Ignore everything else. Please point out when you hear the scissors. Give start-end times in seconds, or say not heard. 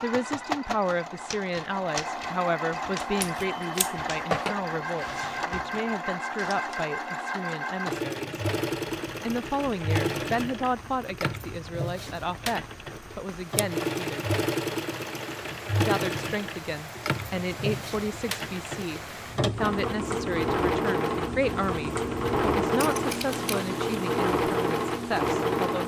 3.0-4.5, 22.8-23.6.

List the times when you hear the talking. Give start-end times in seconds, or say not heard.
0.0-8.4, 9.2-14.3, 15.8-25.8.